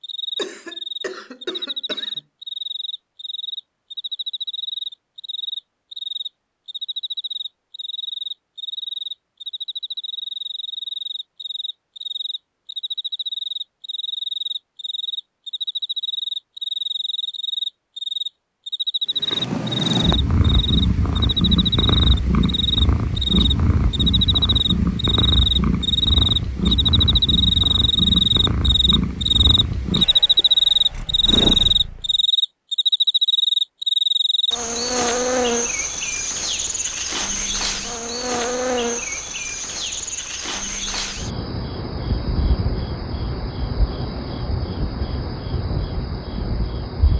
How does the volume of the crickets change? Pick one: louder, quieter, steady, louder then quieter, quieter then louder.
louder then quieter.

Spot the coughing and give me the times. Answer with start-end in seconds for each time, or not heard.
0.3-2.2.